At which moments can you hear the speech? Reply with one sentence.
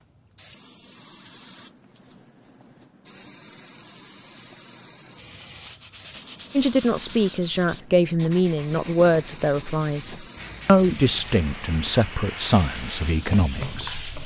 You can hear the speech from 6.5 to 14.1 s.